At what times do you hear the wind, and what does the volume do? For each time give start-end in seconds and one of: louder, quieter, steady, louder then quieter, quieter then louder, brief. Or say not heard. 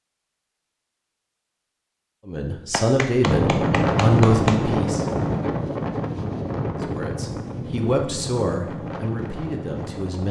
3.2-10.2 quieter.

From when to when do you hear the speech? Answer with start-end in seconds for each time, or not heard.
2.2-5.0, 6.8-10.2.